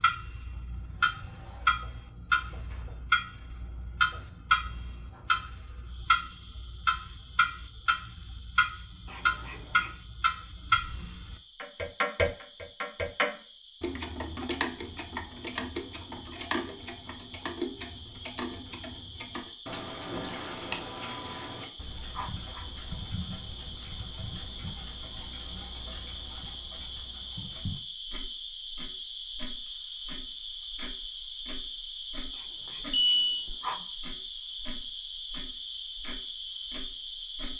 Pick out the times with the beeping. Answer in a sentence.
You can hear the beeping from 32.6 to 33.5 s.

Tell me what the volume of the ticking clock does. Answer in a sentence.
The loudness of the ticking clock goes down.